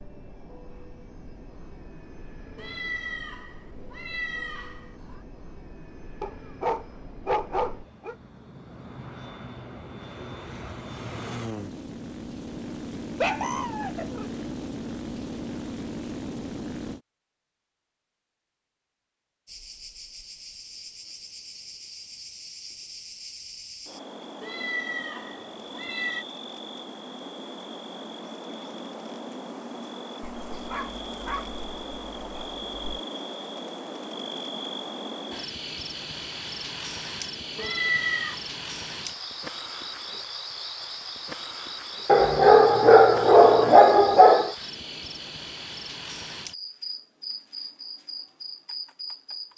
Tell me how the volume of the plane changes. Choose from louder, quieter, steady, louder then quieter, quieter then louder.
louder.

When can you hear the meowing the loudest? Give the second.
38 s.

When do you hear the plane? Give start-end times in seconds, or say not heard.
0.0-17.0.